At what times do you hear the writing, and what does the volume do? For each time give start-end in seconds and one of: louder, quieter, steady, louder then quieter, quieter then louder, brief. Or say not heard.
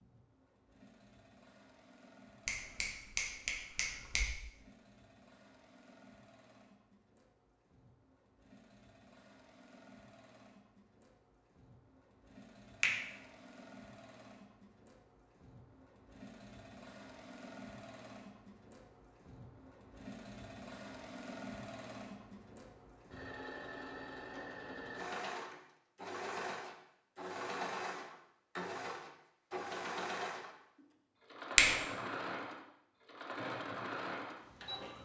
not heard.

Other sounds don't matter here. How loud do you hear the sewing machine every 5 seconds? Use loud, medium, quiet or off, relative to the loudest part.
quiet, quiet, quiet, quiet, medium, loud, loud.